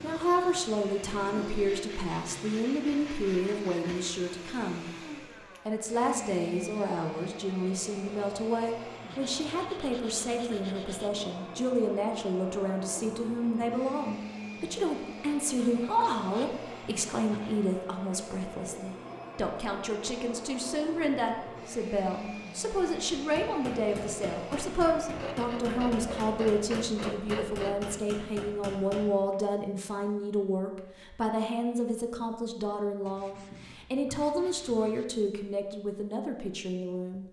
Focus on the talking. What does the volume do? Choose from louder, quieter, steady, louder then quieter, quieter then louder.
steady.